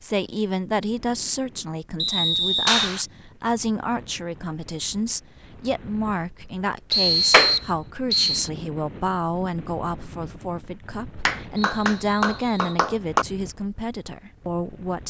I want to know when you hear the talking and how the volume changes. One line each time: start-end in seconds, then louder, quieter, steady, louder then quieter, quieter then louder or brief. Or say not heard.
0.0-15.0 steady.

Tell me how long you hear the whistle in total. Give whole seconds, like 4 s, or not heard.
4 s.